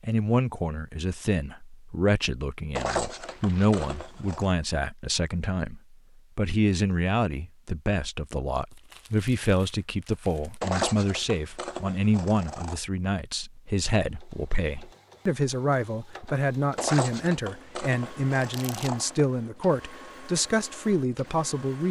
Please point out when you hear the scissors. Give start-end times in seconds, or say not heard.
2.8-4.5, 10.6-12.8, 16.8-19.2.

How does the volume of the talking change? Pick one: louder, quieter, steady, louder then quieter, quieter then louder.
steady.